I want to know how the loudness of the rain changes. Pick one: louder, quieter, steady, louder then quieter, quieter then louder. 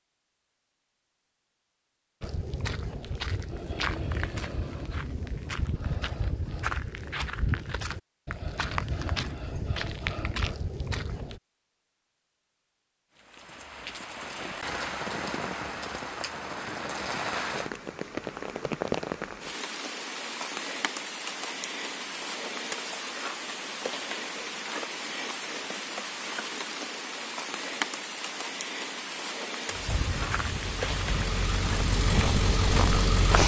steady.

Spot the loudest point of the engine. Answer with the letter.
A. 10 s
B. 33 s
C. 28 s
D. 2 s
B.